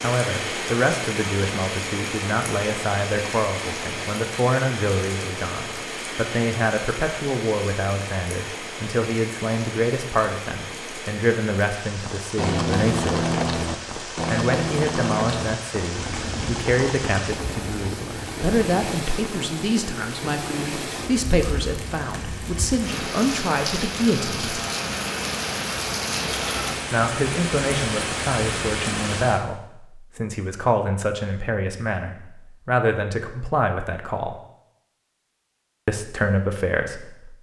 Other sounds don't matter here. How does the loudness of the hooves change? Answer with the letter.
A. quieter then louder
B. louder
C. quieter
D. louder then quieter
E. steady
C.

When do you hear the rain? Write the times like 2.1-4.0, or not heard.
0.0-29.4.